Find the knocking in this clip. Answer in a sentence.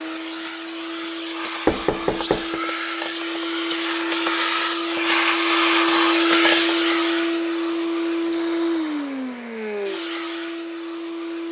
The knocking can be heard from 1.6 to 2.6 s.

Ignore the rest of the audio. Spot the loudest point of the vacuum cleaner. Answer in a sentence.
The loudest moment of the vacuum cleaner is at 6 seconds.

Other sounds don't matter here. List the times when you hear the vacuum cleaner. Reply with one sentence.
You can hear the vacuum cleaner from 0.0 to 11.4 s.